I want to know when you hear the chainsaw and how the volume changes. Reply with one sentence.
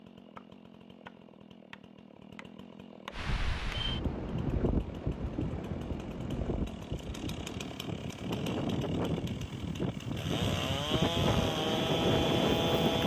The chainsaw can be heard from 0.0 to 13.0 s, getting louder.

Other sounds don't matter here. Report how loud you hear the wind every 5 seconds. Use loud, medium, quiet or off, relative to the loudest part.
medium, medium, loud.